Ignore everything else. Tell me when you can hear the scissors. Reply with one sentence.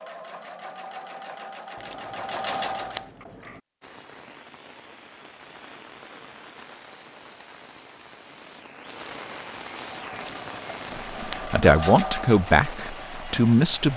The scissors can be heard from 1.8 to 3.6 s and from 10.1 to 11.6 s.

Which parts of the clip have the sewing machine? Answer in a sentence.
The sewing machine can be heard from 0.0 to 3.1 s and from 9.8 to 13.9 s.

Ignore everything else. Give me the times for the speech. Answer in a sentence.
You can hear the speech from 11.1 to 13.9 s.